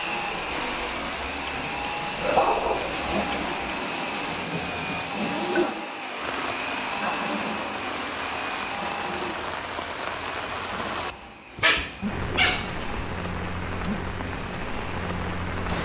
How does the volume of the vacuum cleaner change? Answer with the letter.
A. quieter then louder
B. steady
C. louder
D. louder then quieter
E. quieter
E.